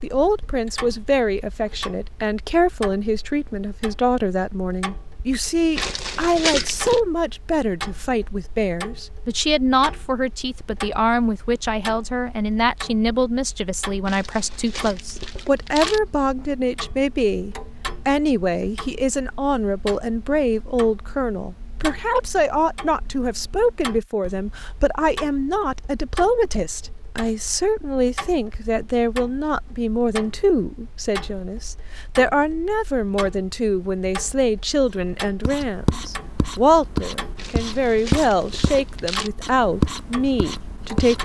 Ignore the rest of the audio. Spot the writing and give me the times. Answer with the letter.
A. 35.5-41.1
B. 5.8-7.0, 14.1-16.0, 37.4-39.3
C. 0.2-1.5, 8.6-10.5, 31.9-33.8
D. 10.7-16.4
A.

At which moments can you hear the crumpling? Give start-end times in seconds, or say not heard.
5.8-7.0, 14.1-16.0, 37.4-39.3.